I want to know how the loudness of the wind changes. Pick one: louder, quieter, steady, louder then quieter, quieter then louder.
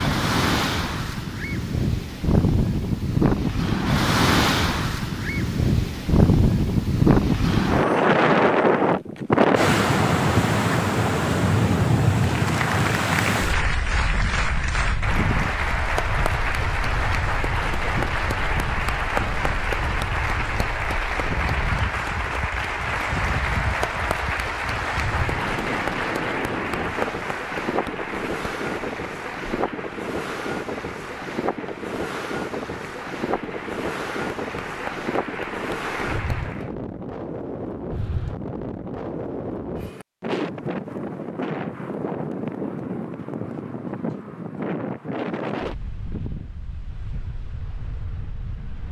quieter.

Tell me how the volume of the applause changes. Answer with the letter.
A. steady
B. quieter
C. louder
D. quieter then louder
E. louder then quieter
B.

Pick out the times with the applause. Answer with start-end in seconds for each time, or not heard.
12.2-36.7.